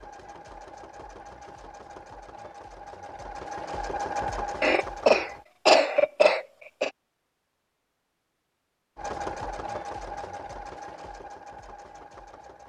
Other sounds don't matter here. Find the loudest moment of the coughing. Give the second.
6 s.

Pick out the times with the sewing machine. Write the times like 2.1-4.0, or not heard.
0.0-5.5, 8.9-12.6.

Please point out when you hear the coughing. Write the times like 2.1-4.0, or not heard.
4.6-6.9.